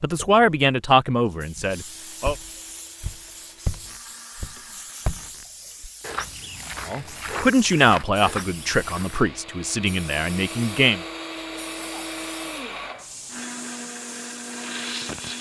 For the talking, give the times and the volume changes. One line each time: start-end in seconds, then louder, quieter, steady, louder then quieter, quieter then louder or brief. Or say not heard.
0.0-2.4 brief
6.8-11.0 quieter.